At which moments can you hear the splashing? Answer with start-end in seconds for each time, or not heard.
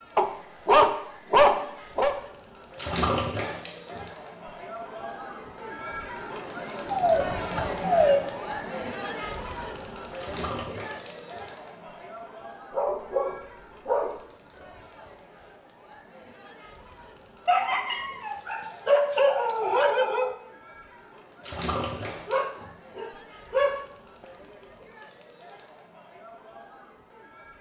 2.8-4.0, 10.2-11.4, 21.4-22.7.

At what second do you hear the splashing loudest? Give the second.
3 s.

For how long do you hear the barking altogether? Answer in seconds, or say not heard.
9 s.